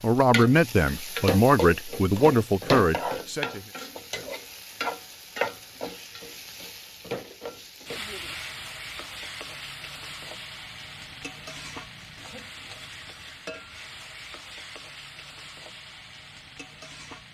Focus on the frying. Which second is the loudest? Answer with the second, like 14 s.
3 s.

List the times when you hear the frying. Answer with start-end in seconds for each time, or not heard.
0.0-17.2.